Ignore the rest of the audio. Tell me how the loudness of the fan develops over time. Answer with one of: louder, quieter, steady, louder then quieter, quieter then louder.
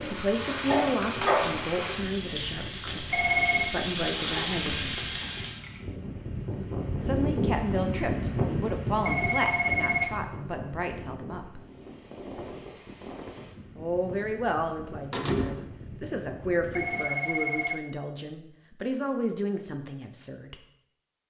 louder then quieter.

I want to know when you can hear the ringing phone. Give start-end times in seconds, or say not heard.
3.1-3.7, 9.0-10.2, 16.7-17.8.